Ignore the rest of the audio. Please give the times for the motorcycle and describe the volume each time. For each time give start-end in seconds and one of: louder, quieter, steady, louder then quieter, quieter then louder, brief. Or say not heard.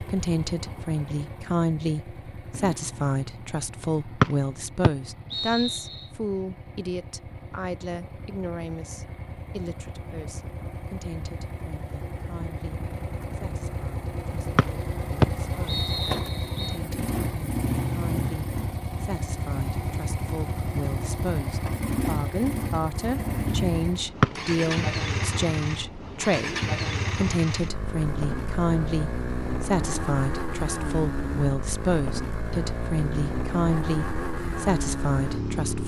0.0-35.8 louder.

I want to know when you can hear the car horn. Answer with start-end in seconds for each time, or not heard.
not heard.